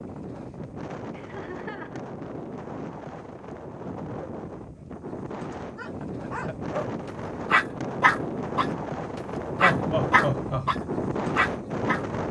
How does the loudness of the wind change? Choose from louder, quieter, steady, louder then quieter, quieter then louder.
louder.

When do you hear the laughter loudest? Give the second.
10 s.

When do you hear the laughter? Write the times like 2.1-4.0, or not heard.
1.1-2.0, 6.0-6.5, 9.6-10.7.